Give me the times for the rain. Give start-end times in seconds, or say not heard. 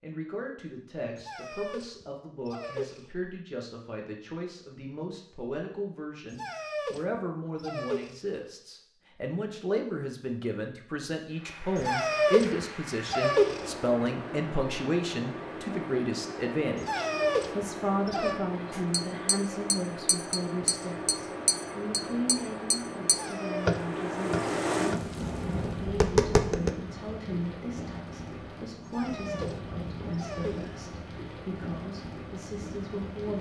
11.3-33.3.